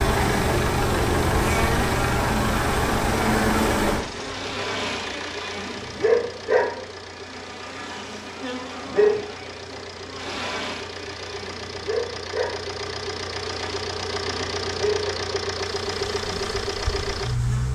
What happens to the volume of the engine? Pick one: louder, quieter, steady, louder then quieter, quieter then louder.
quieter then louder.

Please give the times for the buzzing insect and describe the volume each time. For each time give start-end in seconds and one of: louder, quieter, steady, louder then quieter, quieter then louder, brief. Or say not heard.
0.0-17.7 quieter.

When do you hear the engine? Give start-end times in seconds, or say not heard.
0.0-17.7.